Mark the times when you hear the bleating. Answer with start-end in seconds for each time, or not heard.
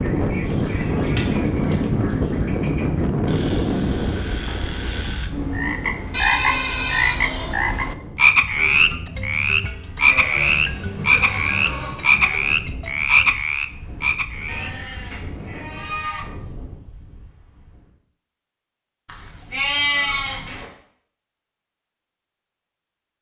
0.5-2.5, 6.1-7.5, 10.1-12.4, 14.4-16.2, 19.1-20.6.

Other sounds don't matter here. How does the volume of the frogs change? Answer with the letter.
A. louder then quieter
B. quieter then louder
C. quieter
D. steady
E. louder
E.